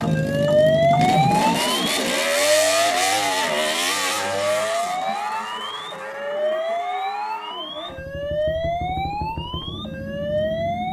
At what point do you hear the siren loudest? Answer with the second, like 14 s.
1 s.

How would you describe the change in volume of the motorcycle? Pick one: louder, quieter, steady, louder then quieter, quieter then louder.
quieter.